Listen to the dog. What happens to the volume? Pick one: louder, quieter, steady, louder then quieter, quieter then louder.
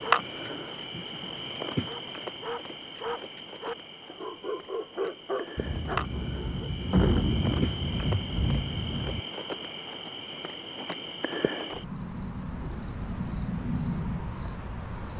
louder.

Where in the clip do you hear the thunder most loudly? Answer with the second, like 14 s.
7 s.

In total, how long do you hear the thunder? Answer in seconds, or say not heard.
4 s.